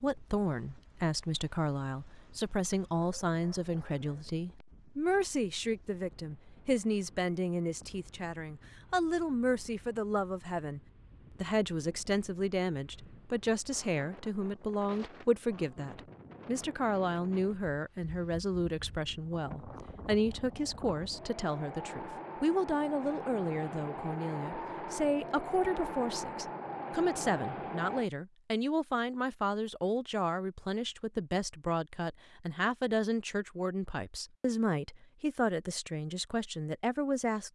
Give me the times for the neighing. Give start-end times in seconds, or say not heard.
not heard.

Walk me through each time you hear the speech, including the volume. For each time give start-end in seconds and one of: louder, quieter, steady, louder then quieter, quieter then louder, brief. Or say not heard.
0.0-10.8 steady
11.4-37.5 steady.